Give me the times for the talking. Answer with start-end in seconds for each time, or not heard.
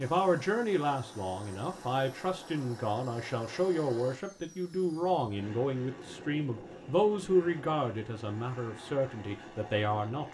0.0-10.3.